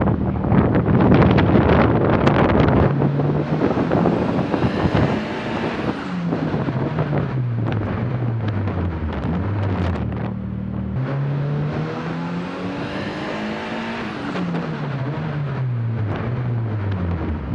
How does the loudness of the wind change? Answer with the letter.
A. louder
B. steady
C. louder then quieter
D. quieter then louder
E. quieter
E.